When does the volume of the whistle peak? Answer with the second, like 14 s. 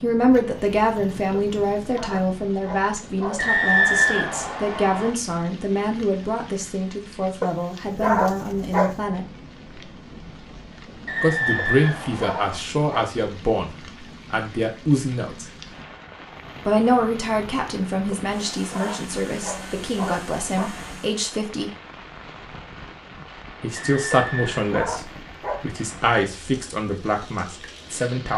4 s.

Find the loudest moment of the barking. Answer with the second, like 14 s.
8 s.